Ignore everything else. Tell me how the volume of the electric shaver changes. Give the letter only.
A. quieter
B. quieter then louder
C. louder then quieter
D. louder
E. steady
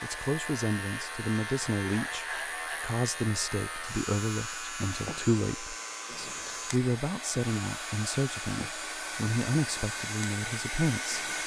A.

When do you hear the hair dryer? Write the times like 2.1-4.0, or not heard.
0.0-11.4.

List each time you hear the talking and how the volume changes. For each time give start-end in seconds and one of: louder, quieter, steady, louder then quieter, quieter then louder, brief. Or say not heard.
0.0-11.3 steady.